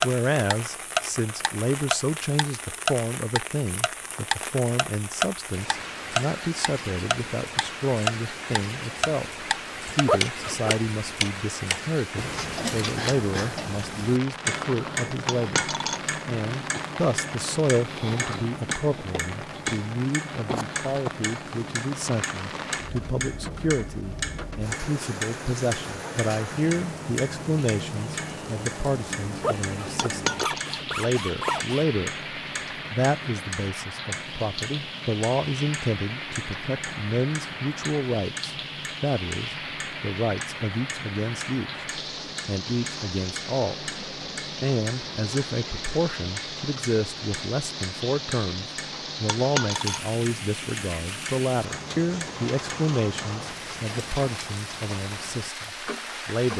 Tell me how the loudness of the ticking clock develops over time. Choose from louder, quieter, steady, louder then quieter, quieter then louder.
quieter.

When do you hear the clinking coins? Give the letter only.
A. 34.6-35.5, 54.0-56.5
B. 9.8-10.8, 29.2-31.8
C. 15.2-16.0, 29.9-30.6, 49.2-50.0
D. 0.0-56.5
C.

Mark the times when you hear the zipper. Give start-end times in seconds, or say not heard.
9.8-10.8, 29.2-31.8.